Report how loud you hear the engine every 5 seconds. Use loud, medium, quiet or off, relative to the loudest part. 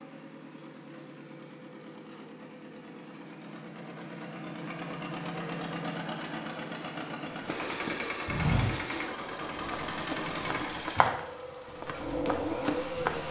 medium, loud, loud.